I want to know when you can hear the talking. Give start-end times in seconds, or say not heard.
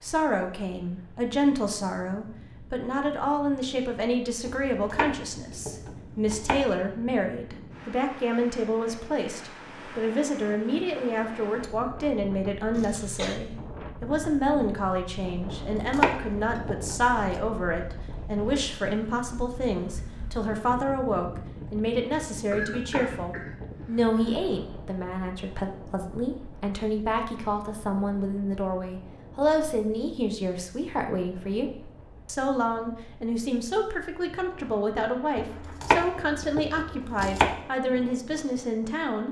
0.0-39.2.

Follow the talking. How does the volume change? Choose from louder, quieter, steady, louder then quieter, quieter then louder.
steady.